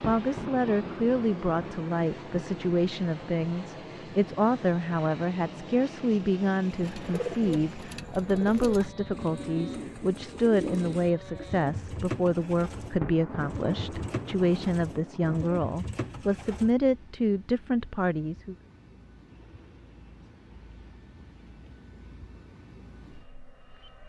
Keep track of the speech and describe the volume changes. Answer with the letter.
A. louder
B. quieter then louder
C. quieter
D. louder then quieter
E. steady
E.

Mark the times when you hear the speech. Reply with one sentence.
You can hear the speech from 0.1 to 18.6 s.